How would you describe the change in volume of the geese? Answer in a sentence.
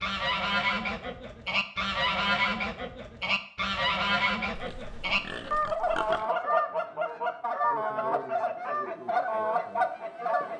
The volume of the geese stays about the same.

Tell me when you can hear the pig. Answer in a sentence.
You can hear the pig from 4.5 to 6.2 s.